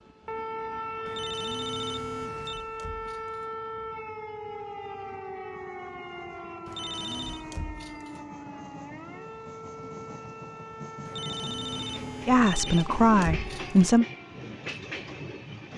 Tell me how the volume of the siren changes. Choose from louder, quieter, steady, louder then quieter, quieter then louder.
quieter.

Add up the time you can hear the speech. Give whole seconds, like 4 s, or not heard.
2 s.